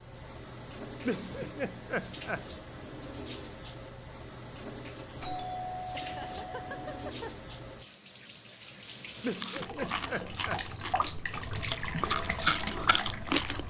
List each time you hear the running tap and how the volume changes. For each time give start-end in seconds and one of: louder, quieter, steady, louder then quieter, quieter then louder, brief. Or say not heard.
0.0-13.6 louder.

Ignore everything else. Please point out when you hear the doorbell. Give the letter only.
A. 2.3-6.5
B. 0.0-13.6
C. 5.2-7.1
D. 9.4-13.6
C.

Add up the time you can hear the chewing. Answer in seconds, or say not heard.
4 s.